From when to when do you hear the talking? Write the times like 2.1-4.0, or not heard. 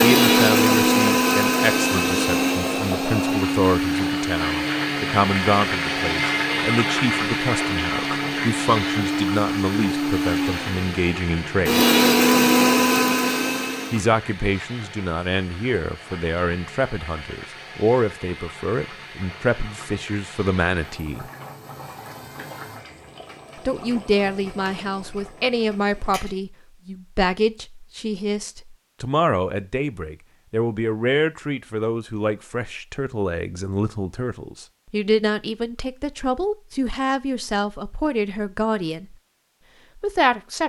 0.0-11.8, 13.9-21.2, 23.6-39.1, 40.0-40.6.